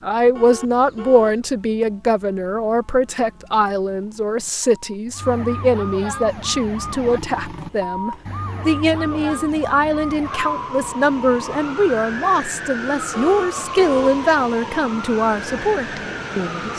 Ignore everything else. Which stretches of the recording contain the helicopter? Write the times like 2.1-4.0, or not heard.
not heard.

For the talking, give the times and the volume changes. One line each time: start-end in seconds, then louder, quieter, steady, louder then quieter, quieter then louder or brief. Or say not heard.
0.0-16.7 steady.